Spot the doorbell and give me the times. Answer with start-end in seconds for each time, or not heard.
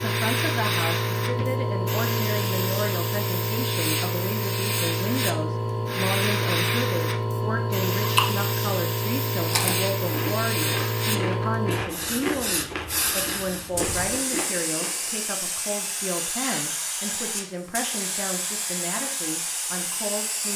not heard.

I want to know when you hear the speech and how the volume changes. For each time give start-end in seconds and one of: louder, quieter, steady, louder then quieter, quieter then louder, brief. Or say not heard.
0.0-20.5 steady.